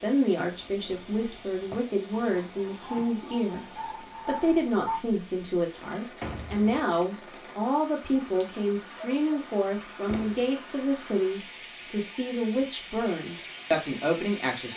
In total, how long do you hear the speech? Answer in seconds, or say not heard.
15 s.